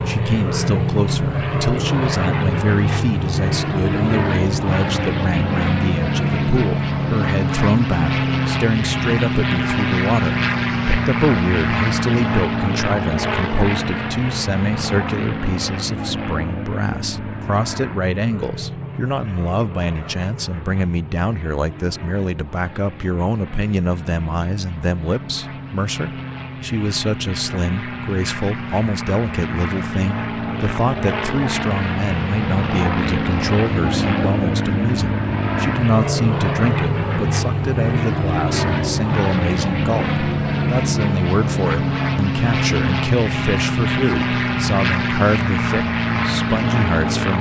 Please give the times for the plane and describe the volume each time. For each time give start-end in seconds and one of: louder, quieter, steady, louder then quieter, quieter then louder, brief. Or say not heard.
0.0-47.3 quieter then louder.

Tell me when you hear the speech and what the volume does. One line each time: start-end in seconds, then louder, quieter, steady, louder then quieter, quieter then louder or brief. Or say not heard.
0.1-47.3 steady.